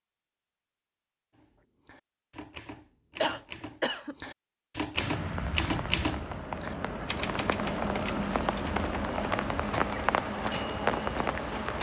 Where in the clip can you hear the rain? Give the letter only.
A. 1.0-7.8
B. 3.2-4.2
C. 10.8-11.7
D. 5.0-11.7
D.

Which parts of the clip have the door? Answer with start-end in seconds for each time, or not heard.
not heard.